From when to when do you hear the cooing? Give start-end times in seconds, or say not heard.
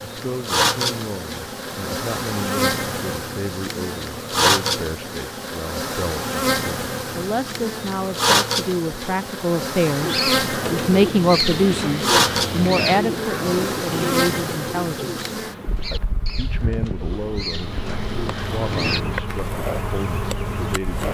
10.0-19.0.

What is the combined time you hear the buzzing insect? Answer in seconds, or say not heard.
21 s.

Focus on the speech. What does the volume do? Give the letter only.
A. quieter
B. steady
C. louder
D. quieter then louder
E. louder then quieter
E.